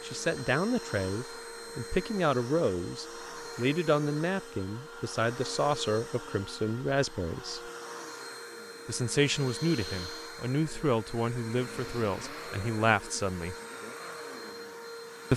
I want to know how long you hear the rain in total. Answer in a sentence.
You can't hear the rain here.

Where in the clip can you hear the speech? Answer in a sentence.
You can hear the speech from 0.0 to 7.7 s and from 8.8 to 13.6 s.